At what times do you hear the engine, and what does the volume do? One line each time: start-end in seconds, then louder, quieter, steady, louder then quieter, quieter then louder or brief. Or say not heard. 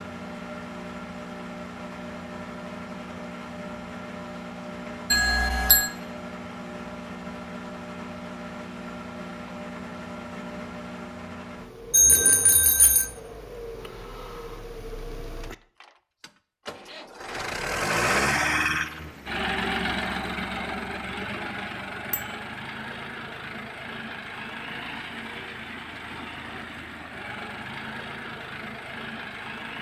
0.0-29.7 louder then quieter.